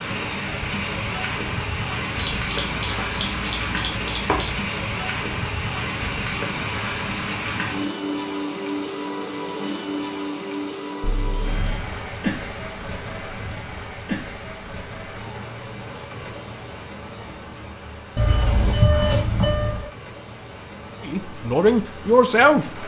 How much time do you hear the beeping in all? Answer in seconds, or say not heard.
5 s.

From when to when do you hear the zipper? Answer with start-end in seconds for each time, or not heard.
not heard.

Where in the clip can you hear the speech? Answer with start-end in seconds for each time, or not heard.
21.1-22.8.